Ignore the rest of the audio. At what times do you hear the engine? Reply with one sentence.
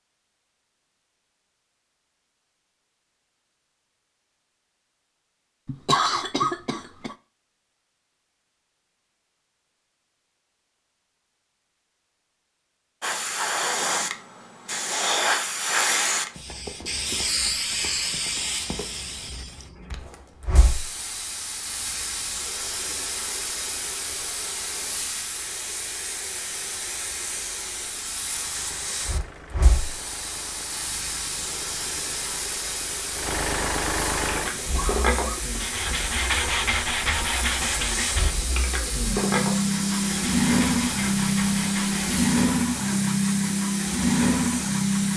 The engine can be heard from 28.2 to 45.1 s.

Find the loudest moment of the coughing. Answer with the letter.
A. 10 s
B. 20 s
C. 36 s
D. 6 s
D.